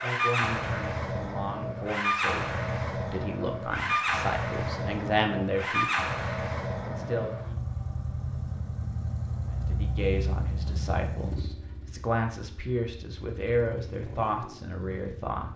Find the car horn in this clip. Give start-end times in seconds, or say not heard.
not heard.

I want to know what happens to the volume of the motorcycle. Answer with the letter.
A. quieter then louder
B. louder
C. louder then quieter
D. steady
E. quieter
E.